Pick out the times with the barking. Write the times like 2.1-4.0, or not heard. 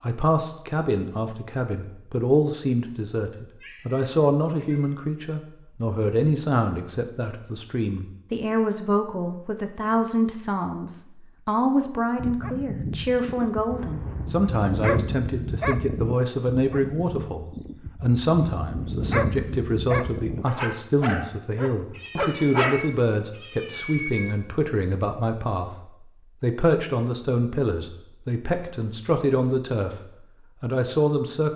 11.8-22.9.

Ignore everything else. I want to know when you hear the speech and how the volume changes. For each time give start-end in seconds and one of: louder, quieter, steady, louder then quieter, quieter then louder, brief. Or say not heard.
0.0-29.9 steady
30.6-31.5 brief.